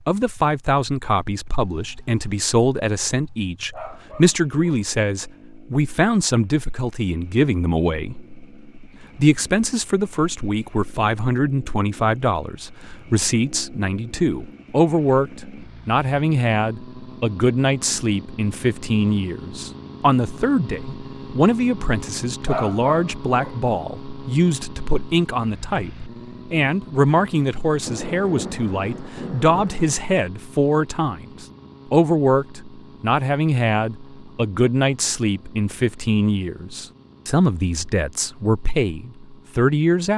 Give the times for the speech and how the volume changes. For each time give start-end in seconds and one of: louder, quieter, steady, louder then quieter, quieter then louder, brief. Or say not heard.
0.1-40.1 steady.